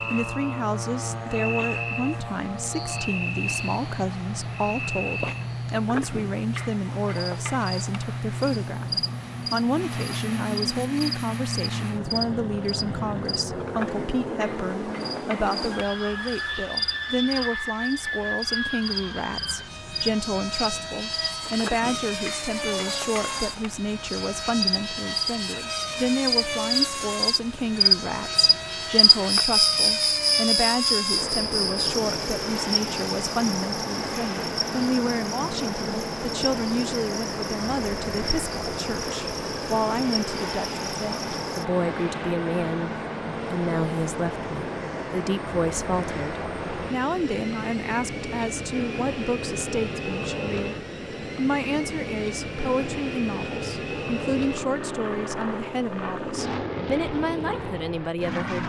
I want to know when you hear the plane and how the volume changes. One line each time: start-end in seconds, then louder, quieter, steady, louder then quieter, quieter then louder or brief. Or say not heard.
0.0-58.6 steady.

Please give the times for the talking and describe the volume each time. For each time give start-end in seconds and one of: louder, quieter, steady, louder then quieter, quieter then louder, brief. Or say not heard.
0.0-58.6 steady.